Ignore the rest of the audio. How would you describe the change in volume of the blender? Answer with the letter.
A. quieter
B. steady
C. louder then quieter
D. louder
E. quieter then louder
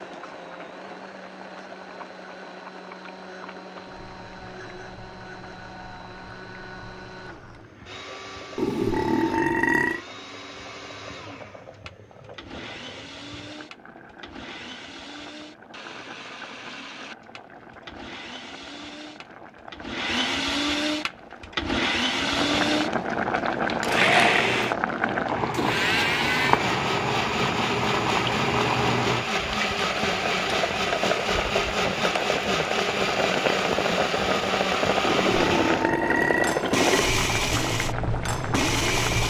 D.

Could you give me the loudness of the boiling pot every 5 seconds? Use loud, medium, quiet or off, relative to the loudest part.
quiet, quiet, quiet, quiet, loud, loud, loud, loud.